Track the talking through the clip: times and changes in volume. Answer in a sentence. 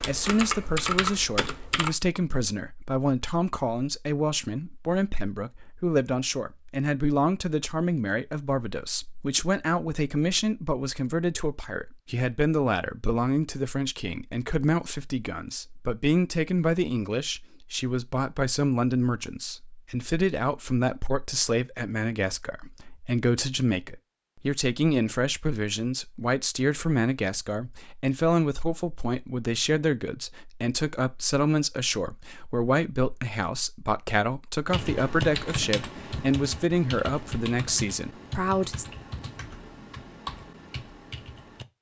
The talking can be heard from 0.0 to 38.9 s, at a steady volume.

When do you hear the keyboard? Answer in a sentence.
The keyboard can be heard from 0.0 to 1.9 s and from 34.6 to 41.6 s.